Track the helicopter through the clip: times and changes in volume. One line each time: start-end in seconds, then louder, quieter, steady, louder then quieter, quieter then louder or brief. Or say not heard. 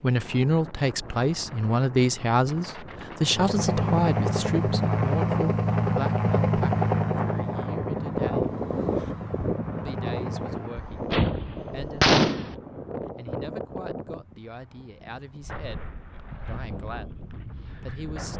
3.2-10.8 quieter.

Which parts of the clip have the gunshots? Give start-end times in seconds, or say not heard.
10.9-12.6.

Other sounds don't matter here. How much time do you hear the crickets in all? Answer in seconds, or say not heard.
not heard.